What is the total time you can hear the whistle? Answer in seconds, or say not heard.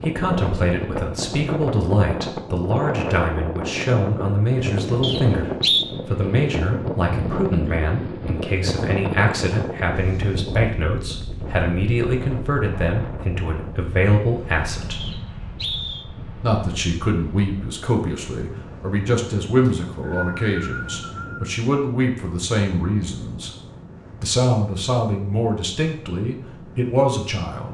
4 s.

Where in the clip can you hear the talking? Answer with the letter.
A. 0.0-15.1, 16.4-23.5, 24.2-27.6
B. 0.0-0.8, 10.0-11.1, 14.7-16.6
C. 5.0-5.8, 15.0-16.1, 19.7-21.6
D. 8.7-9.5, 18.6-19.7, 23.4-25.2
A.